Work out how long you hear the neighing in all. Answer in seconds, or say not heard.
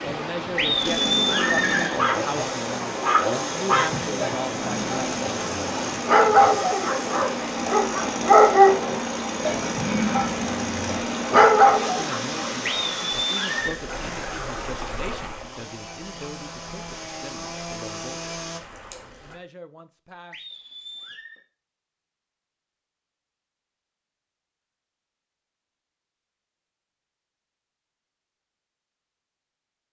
4 s.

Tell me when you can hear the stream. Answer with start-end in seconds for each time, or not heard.
0.0-19.4.